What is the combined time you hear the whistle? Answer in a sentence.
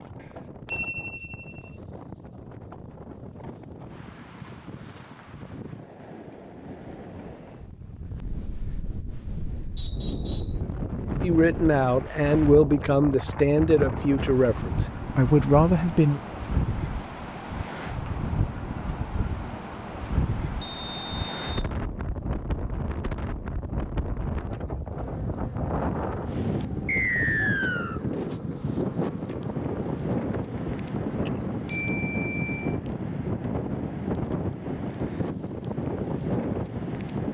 The whistle can be heard for 3 seconds in total.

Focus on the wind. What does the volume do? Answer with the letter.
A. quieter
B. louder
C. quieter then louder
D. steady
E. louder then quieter
B.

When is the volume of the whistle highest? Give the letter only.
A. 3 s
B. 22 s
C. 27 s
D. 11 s
C.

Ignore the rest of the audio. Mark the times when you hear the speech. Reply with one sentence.
The speech can be heard from 11.2 to 16.2 s.